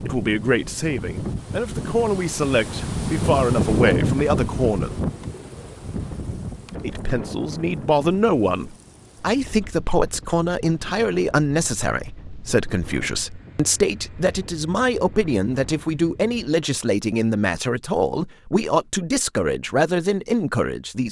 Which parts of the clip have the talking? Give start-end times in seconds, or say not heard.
0.0-4.9, 6.8-21.0.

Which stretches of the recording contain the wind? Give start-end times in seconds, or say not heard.
0.0-16.6.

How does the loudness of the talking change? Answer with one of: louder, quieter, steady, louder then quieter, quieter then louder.
steady.